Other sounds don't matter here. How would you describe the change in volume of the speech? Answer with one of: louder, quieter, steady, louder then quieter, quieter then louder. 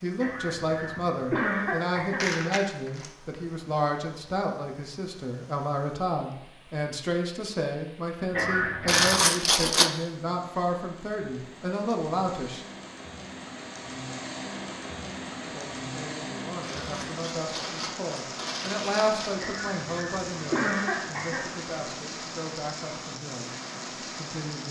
quieter.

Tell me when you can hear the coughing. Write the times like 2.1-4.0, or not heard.
0.2-2.3, 8.3-9.2, 19.4-21.5.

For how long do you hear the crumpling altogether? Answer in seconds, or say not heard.
5 s.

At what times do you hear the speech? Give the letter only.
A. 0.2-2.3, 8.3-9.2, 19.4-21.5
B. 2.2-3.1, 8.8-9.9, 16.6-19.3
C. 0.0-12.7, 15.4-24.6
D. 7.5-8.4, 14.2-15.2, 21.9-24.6
C.